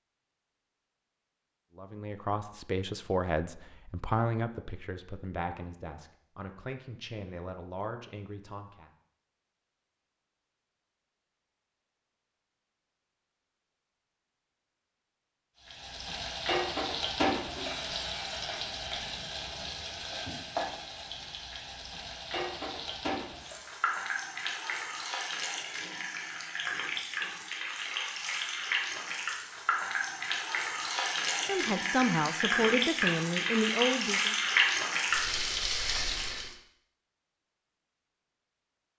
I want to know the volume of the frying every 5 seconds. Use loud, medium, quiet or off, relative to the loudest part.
off, off, off, medium, medium, medium, loud, loud.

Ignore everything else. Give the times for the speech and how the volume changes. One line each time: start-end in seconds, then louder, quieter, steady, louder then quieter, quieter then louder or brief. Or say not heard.
1.8-8.9 quieter
31.4-34.4 brief.